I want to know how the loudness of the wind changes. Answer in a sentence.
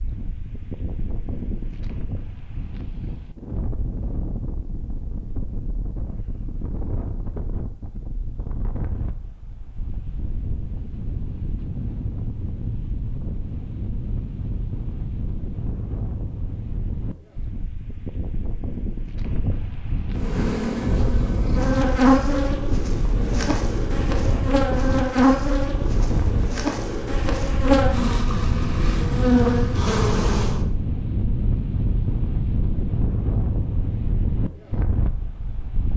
The loudness of the wind goes up.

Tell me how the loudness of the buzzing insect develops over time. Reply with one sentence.
The loudness of the buzzing insect goes down, then up.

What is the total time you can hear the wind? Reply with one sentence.
The wind can be heard for 36 seconds in total.